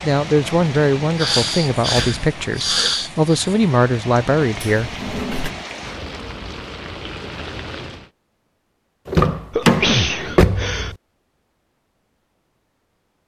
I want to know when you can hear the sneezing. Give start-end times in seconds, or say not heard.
1.1-3.5, 9.5-10.9.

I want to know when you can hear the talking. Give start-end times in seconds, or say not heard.
0.0-4.9.